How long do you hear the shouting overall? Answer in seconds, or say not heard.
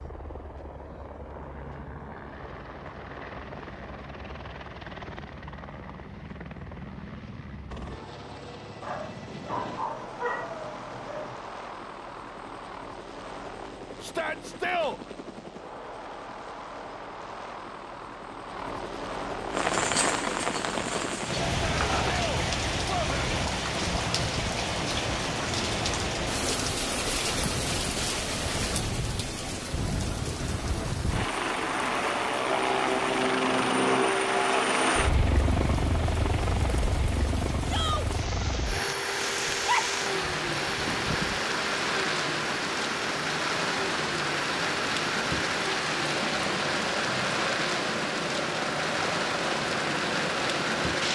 3 s.